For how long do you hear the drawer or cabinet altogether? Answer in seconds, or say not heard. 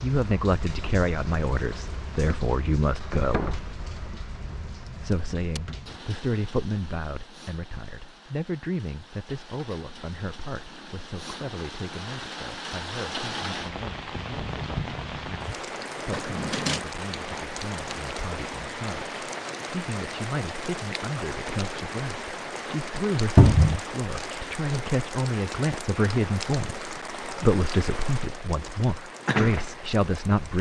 2 s.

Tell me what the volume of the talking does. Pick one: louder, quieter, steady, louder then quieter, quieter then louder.
quieter then louder.